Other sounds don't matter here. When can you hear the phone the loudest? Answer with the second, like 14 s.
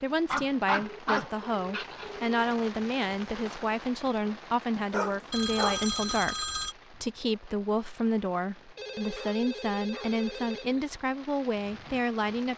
6 s.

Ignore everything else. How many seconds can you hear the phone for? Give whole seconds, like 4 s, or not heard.
5 s.